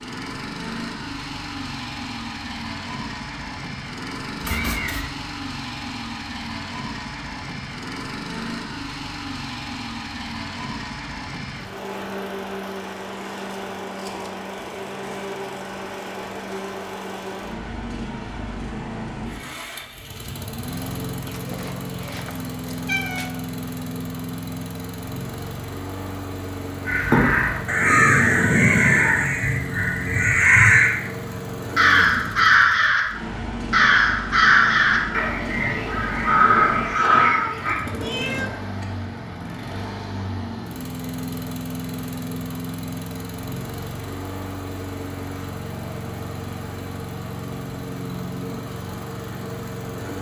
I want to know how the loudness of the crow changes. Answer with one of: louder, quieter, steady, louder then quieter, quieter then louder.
steady.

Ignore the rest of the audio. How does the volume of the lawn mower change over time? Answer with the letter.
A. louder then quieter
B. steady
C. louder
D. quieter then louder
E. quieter
B.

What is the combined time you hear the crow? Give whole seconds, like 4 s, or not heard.
11 s.